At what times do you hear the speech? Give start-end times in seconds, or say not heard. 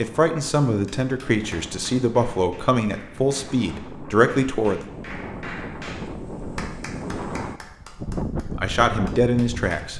0.0-4.8, 8.6-9.9.